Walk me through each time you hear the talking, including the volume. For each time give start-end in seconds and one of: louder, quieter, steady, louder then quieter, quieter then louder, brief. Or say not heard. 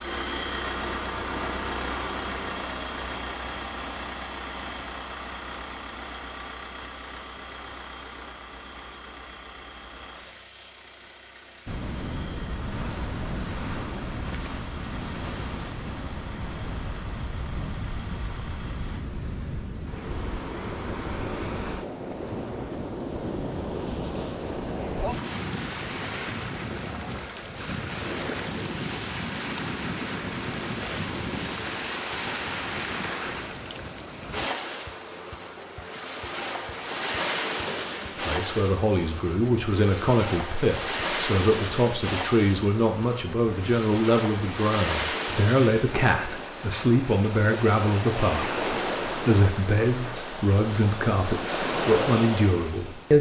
38.2-53.1 steady.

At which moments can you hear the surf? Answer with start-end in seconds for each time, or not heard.
11.7-53.1.